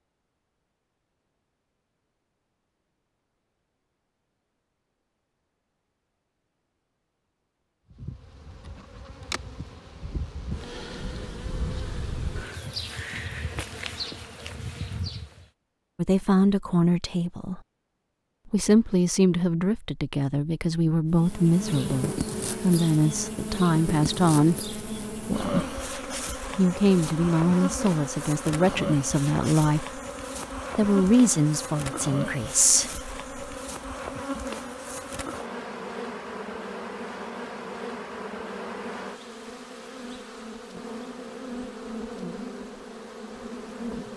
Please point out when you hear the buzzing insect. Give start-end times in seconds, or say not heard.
7.9-15.5, 21.1-44.1.